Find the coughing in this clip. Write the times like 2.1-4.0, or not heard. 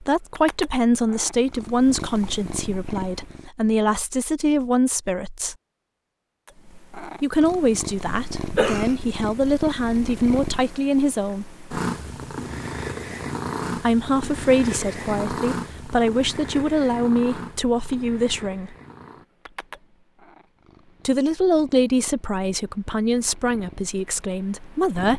8.1-8.9.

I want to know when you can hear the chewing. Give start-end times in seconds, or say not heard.
not heard.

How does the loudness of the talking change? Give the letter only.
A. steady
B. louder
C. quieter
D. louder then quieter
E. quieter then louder
A.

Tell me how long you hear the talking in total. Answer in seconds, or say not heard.
19 s.